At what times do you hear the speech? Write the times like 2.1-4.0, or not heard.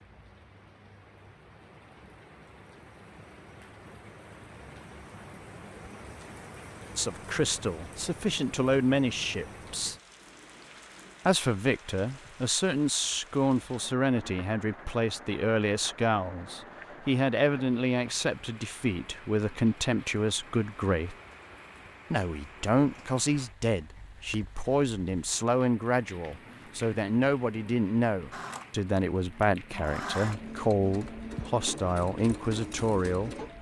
7.0-9.9, 11.2-21.1, 22.1-33.3.